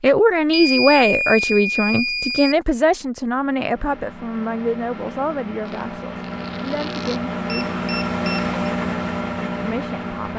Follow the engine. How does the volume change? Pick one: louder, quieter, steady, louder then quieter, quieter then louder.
louder.